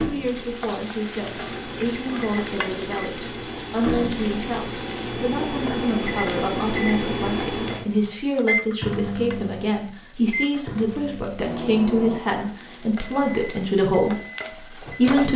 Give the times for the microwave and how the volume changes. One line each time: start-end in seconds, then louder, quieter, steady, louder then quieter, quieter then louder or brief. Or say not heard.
0.0-15.3 louder then quieter.